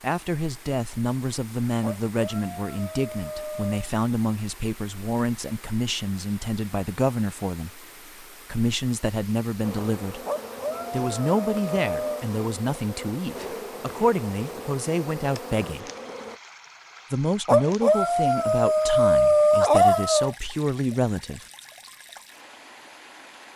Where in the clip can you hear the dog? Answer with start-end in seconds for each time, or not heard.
1.8-3.9, 10.2-12.2, 17.4-20.4.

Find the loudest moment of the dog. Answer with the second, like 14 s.
20 s.